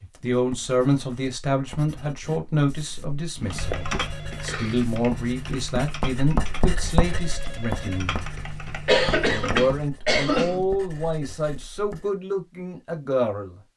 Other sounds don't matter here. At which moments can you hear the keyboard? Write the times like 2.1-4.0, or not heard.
3.4-9.9.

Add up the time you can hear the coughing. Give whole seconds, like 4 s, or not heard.
3 s.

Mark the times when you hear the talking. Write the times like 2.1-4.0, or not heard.
0.0-8.2, 9.2-13.6.